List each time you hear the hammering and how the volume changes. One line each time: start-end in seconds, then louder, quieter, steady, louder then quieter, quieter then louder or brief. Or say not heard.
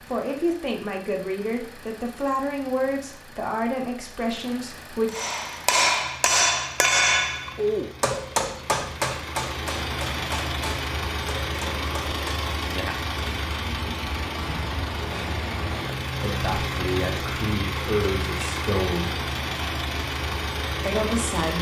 5.0-12.5 quieter.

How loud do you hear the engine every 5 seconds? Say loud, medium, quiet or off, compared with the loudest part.
quiet, medium, loud, loud, loud.